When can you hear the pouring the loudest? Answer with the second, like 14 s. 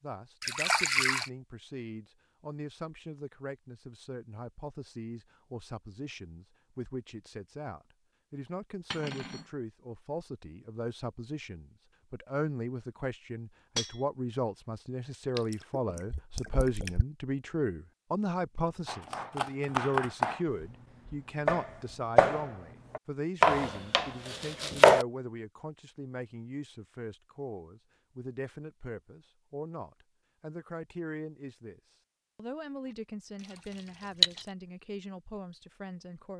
1 s.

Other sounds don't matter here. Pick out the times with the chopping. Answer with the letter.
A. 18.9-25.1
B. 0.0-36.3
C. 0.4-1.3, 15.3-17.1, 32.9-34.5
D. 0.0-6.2
A.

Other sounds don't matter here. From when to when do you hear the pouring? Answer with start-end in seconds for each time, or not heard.
0.4-1.3, 15.3-17.1, 32.9-34.5.